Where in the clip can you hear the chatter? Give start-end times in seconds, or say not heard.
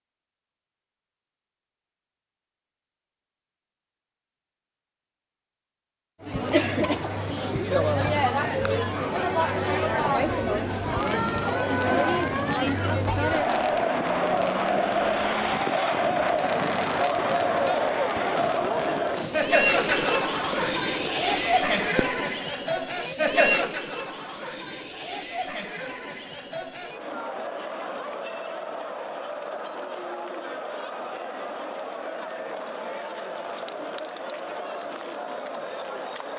6.2-36.3.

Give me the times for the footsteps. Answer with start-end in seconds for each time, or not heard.
not heard.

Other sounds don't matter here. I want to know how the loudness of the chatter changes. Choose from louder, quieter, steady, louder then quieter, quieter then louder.
quieter.